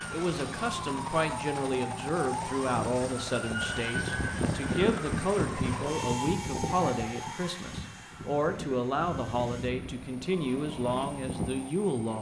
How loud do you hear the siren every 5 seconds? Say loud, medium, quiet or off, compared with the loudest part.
loud, loud, medium.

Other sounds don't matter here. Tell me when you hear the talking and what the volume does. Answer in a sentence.
The talking can be heard from 0.1 to 12.1 s, at a steady volume.